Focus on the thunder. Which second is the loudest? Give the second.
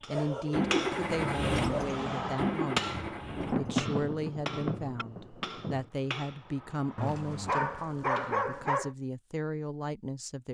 4 s.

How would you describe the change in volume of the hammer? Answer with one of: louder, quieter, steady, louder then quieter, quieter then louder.
quieter.